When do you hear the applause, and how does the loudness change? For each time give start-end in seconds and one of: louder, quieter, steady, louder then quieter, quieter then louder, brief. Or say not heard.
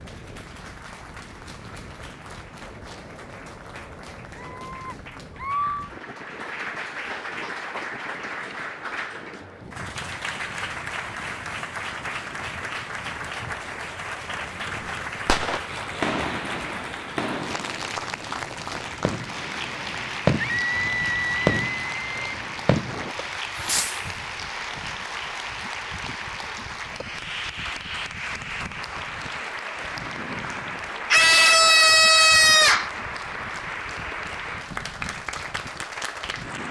0.0-36.6 louder.